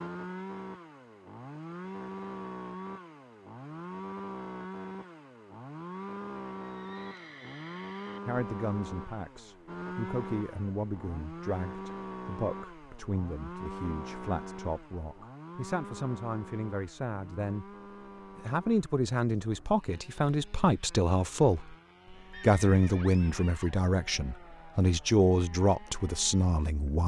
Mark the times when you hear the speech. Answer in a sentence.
The speech can be heard from 8.2 to 17.6 s, from 18.4 to 21.8 s and from 22.4 to 27.0 s.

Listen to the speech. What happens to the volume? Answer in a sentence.
The volume of the speech goes up.